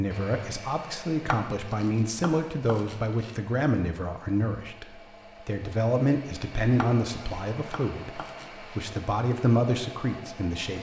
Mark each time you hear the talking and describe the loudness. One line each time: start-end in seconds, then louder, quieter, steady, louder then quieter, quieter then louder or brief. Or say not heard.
0.0-10.7 steady.